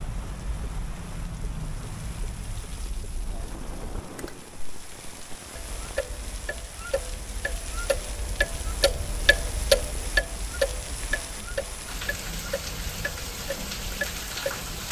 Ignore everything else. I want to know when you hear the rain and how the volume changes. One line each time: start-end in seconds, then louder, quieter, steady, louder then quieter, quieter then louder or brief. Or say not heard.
0.0-14.8 louder.